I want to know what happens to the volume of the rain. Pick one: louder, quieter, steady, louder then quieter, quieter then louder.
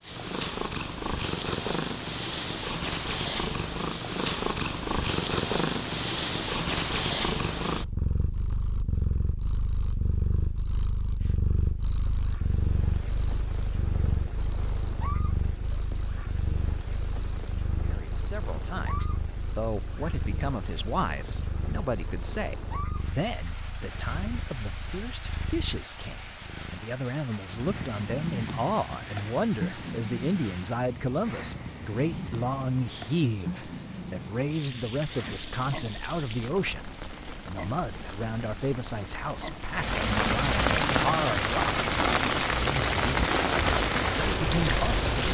louder.